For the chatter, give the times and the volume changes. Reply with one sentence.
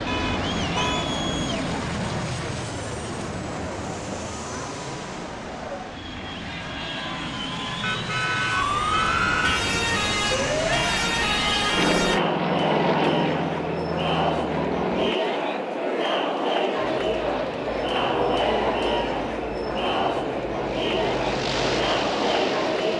The chatter can be heard from 0.0 to 22.9 s, getting louder.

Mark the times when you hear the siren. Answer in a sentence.
You can hear the siren from 8.5 to 12.2 s.